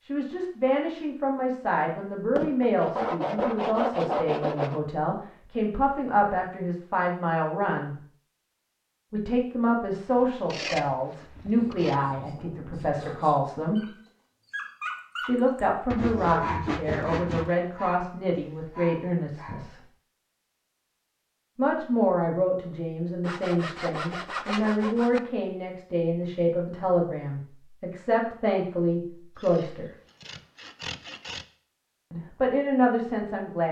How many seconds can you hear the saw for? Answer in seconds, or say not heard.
10 s.